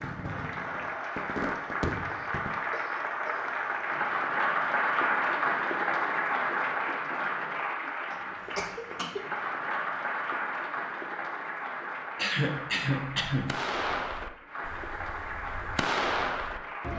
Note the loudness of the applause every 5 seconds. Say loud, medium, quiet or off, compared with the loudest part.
loud, loud, medium, medium.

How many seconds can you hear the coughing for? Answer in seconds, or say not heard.
4 s.